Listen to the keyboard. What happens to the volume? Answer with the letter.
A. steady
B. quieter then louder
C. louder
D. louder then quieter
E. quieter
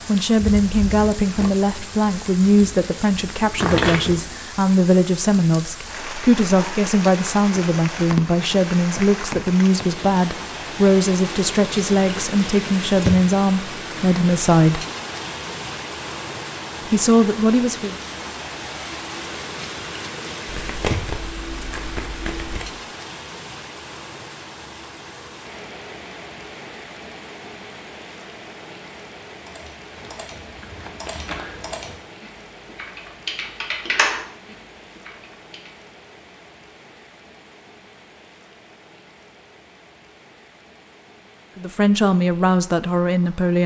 D.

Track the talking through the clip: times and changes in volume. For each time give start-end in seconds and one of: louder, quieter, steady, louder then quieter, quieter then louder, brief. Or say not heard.
0.1-14.8 steady
16.9-17.9 brief
41.5-43.6 brief.